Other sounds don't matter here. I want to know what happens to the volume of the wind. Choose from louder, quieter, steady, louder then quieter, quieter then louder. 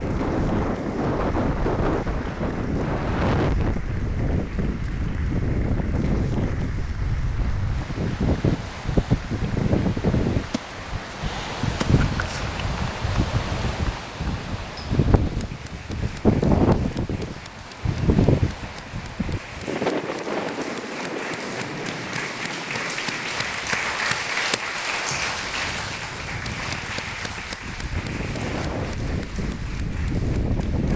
quieter.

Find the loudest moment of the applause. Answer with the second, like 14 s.
24 s.